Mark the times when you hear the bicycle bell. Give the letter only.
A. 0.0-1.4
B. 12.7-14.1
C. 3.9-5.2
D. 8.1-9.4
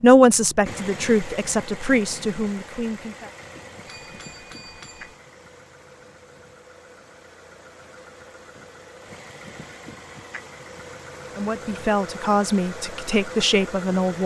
C.